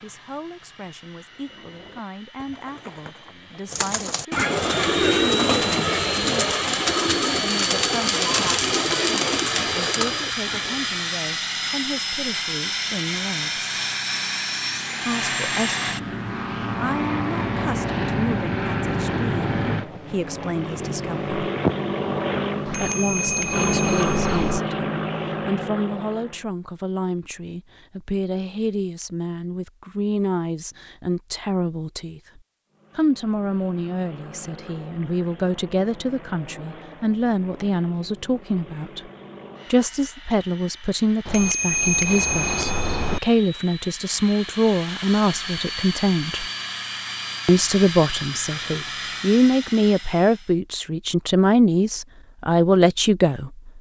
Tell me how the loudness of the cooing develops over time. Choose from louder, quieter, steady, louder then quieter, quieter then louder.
louder.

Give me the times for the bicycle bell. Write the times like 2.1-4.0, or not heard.
22.6-24.6, 41.2-43.2.